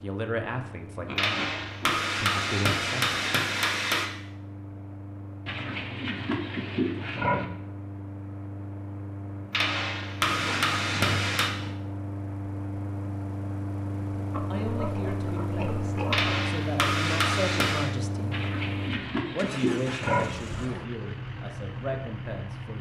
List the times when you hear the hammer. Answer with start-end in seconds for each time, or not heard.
1.1-4.1, 9.5-11.5, 16.1-17.9.